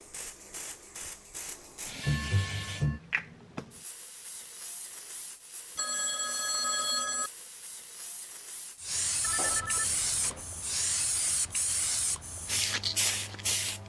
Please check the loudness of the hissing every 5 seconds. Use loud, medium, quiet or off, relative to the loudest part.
medium, medium, loud.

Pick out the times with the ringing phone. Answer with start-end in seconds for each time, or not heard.
2.0-3.0, 5.8-7.3, 9.2-10.4.